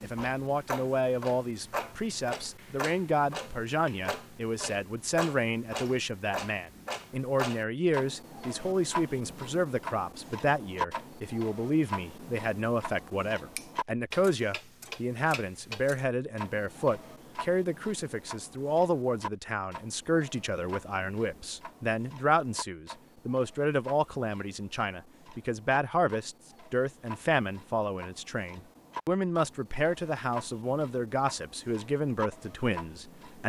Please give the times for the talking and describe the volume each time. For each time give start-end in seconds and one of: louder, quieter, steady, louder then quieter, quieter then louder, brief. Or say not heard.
0.0-33.4 steady.